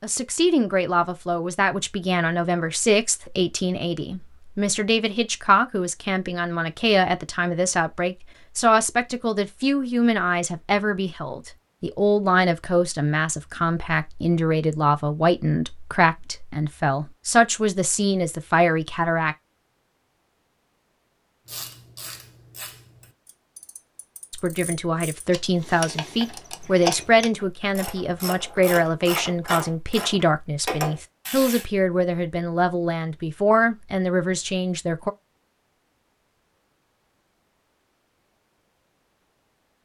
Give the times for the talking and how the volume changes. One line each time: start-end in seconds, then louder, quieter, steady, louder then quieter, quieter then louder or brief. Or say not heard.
0.0-19.4 steady
24.3-35.1 steady.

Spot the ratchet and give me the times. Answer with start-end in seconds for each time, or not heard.
21.4-31.6.